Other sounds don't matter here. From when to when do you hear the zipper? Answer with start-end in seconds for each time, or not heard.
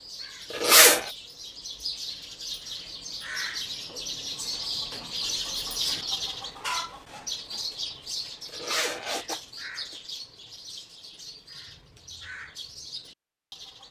0.5-1.1, 8.5-9.4.